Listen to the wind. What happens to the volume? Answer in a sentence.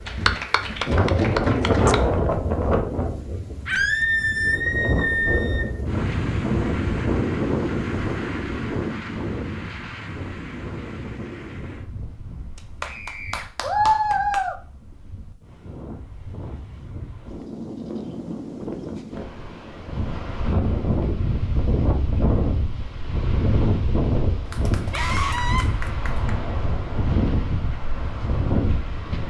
The volume of the wind goes down, then up.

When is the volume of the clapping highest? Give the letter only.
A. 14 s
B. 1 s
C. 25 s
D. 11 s
A.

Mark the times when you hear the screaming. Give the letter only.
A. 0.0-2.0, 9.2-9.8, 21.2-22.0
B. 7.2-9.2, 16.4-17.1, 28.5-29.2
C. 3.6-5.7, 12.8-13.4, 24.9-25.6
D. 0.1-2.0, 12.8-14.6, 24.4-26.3
C.